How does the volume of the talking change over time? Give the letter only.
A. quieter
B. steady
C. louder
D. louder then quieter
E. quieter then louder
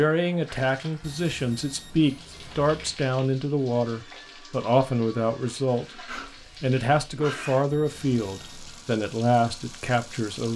B.